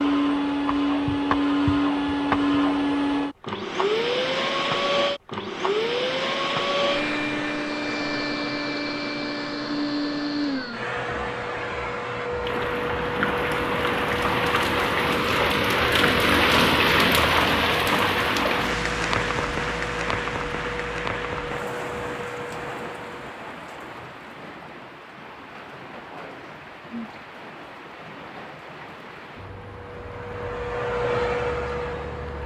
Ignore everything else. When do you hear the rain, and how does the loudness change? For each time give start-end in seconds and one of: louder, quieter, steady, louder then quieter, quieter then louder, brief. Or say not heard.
12.4-32.4 quieter.